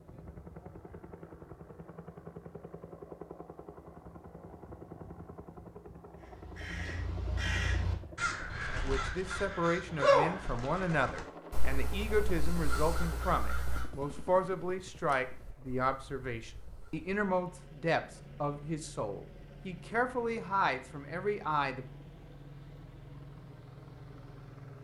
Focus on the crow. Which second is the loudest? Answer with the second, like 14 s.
10 s.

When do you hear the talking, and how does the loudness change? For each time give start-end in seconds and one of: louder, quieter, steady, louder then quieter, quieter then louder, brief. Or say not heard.
8.7-21.9 steady.